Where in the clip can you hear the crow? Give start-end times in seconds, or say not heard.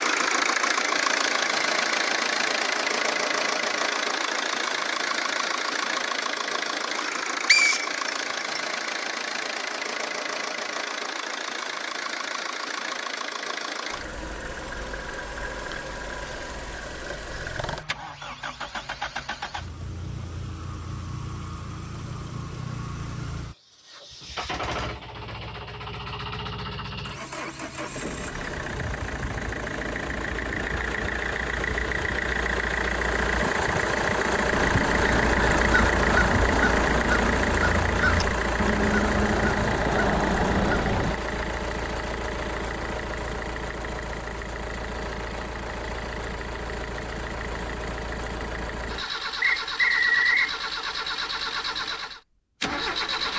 34.5-41.2.